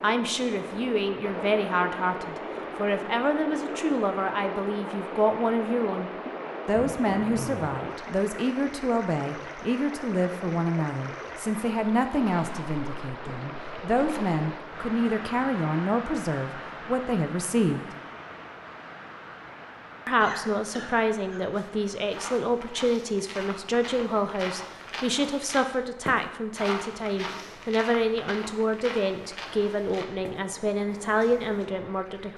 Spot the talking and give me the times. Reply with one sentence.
You can hear the talking from 0.0 to 17.9 s and from 20.1 to 32.3 s.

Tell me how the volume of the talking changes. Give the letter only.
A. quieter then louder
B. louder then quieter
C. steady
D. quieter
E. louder
C.